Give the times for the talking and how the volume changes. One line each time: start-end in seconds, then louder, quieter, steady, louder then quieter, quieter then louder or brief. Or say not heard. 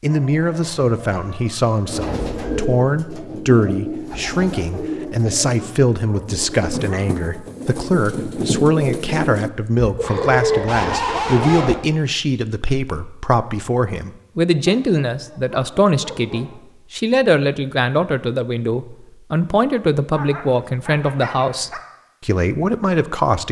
0.0-23.4 steady.